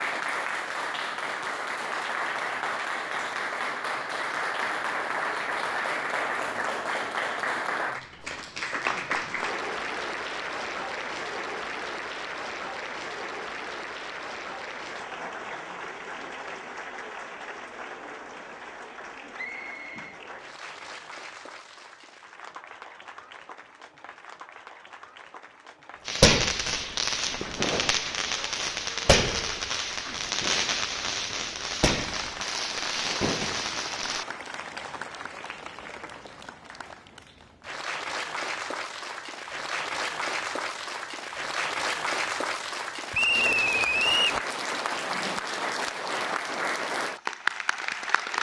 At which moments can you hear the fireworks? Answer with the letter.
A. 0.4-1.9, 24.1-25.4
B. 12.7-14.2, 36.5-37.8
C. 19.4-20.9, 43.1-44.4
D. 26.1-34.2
D.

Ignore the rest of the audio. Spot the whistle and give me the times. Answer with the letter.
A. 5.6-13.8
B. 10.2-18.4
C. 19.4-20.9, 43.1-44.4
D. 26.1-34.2
C.